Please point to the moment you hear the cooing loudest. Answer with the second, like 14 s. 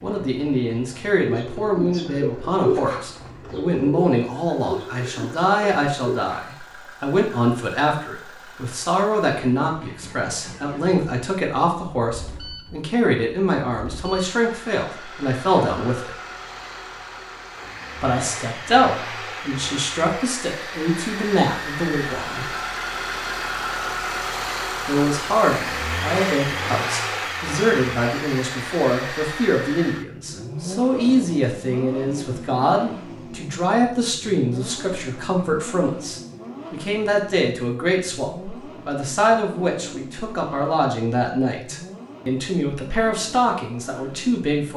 3 s.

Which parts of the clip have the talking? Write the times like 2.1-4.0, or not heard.
0.0-16.1, 18.0-22.5, 24.9-44.7.